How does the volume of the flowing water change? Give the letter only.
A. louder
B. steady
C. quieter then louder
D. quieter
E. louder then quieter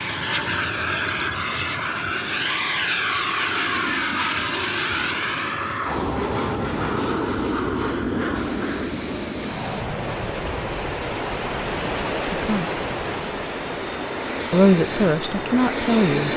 A.